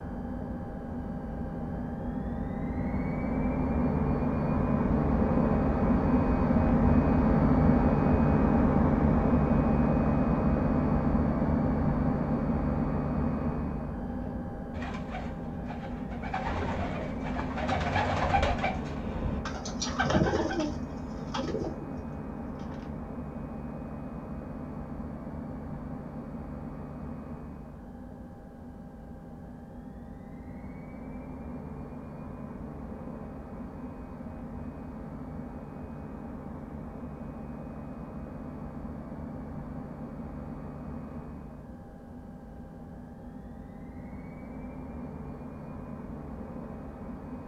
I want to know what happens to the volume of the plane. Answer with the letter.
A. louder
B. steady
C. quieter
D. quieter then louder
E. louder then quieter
C.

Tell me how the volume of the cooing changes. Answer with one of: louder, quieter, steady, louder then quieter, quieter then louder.
louder then quieter.